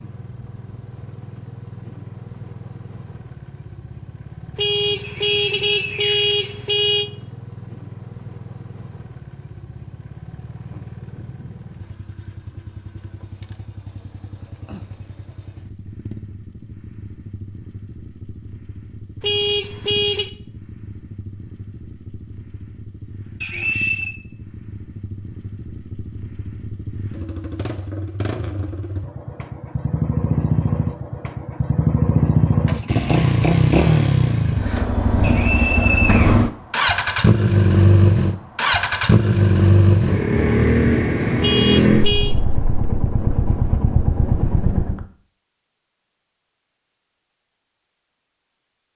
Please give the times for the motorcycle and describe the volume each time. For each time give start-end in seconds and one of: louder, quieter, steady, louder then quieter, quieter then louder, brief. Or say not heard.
0.0-45.0 louder.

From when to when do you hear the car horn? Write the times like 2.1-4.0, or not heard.
4.5-7.1, 19.2-20.3, 41.4-42.4.